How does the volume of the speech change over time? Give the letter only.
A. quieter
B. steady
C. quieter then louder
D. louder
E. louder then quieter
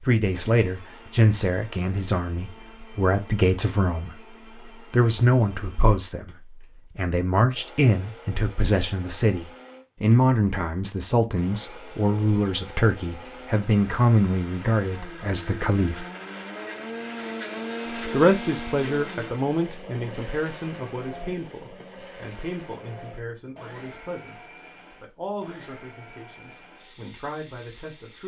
A.